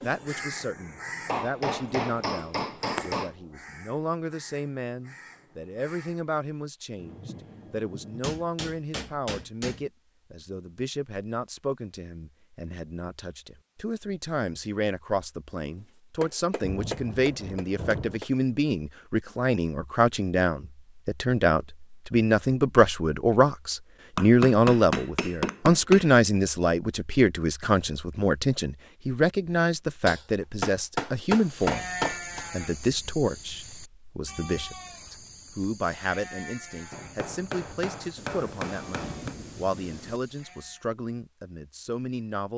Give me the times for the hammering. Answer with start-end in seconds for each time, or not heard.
1.2-3.3, 8.2-9.8, 16.2-18.2, 24.1-26.1, 30.1-32.5, 36.9-39.4.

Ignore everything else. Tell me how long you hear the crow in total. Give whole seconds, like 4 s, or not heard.
6 s.